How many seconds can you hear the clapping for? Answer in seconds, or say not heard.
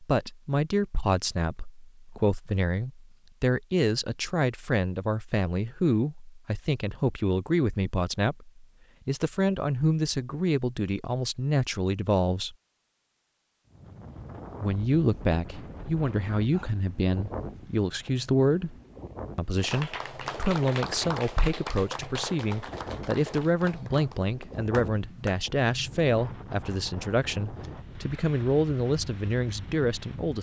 6 s.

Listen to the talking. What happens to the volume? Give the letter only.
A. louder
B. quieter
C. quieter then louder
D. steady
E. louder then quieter
D.